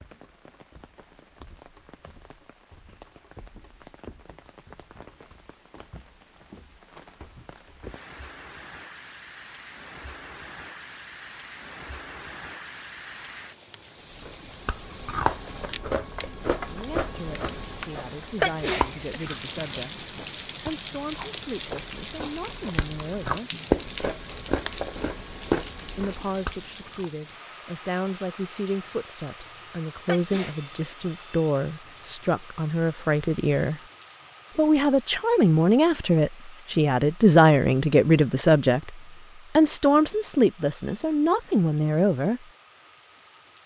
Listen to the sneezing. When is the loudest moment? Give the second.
19 s.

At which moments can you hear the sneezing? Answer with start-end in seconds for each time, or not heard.
18.4-19.2, 30.1-30.9.